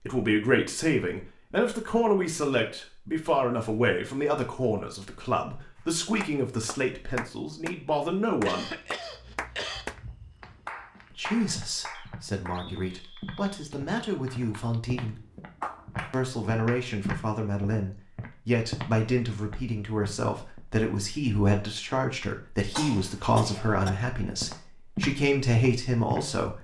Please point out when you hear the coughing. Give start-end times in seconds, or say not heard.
8.4-9.8, 22.8-23.9.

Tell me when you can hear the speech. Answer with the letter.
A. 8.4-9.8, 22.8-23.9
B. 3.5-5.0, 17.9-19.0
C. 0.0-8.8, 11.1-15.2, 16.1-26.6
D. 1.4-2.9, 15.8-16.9
C.